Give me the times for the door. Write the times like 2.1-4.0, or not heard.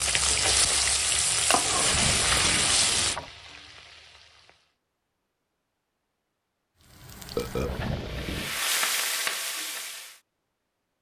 1.7-3.3, 7.5-8.6.